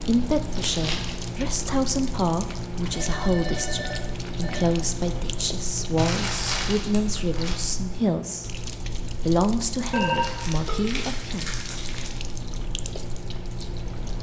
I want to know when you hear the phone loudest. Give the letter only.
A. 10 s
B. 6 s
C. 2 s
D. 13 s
A.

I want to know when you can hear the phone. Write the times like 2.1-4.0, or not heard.
2.9-4.7, 9.9-10.9.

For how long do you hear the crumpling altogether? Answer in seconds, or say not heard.
4 s.